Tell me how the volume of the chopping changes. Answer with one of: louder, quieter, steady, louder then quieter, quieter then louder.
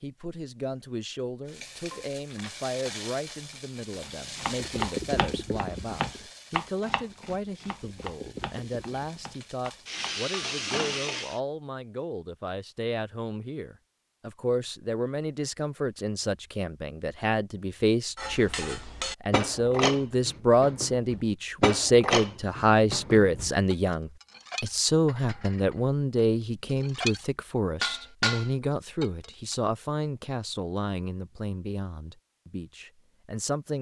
quieter.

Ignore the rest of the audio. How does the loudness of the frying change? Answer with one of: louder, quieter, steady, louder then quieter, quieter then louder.
quieter then louder.